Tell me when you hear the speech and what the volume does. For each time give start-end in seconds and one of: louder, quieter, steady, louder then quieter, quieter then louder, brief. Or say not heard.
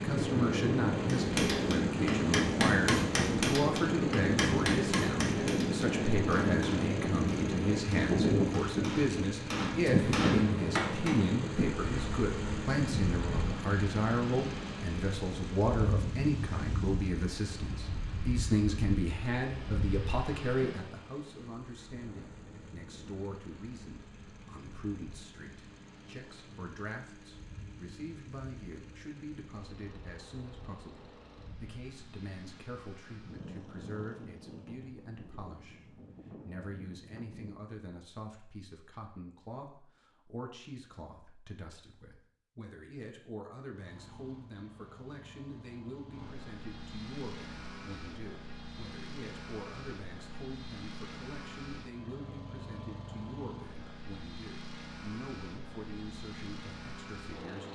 0.0-57.7 quieter.